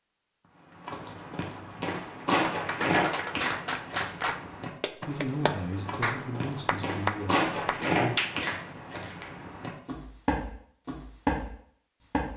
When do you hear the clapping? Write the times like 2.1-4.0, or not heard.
1.9-8.3.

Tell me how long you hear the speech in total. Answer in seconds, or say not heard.
3 s.